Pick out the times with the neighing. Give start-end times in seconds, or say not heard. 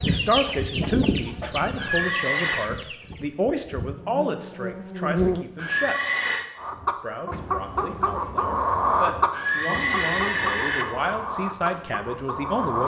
1.8-2.7, 5.5-6.5, 9.3-10.8.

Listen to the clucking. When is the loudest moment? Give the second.
9 s.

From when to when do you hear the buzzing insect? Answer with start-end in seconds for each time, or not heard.
0.0-5.5.